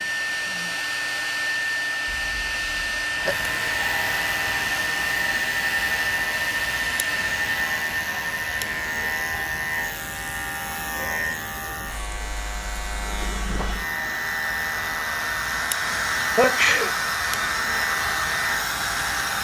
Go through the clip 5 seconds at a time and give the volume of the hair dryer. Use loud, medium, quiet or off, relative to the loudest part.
loud, loud, medium, loud.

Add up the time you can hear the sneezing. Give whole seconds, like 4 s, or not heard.
2 s.